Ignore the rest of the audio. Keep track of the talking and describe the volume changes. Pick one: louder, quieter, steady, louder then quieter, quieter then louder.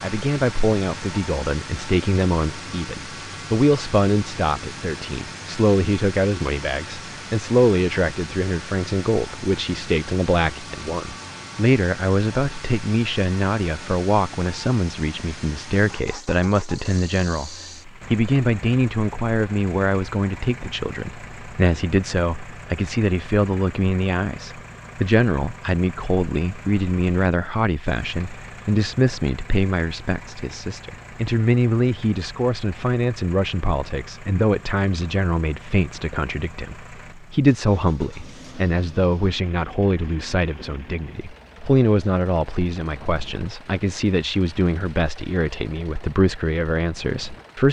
steady.